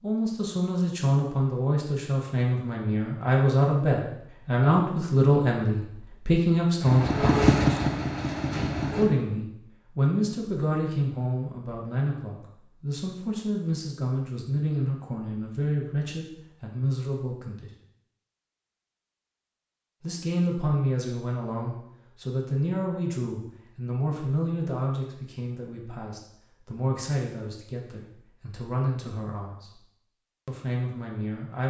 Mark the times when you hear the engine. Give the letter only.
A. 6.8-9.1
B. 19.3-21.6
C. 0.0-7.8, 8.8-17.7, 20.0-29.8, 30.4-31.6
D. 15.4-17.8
A.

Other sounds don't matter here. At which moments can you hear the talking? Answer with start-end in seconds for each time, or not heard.
0.0-7.8, 8.8-17.7, 20.0-29.8, 30.4-31.6.